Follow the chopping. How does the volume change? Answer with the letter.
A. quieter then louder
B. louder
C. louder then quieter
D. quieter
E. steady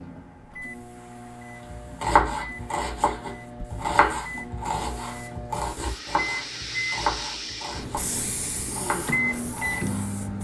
D.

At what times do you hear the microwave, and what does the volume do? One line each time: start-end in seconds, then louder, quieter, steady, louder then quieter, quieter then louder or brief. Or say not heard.
0.0-10.4 louder.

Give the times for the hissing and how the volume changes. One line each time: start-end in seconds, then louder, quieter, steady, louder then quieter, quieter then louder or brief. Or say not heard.
0.0-10.4 louder.